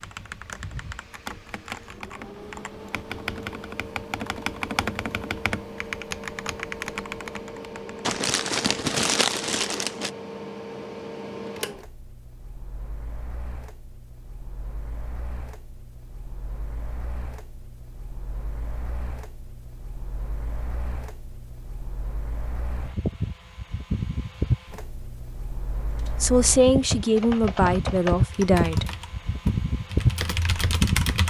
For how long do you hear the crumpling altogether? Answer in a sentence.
The crumpling can be heard for 2 seconds in total.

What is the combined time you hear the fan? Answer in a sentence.
You can hear the fan for 31 seconds altogether.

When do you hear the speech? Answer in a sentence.
The speech can be heard from 26.2 to 28.9 s.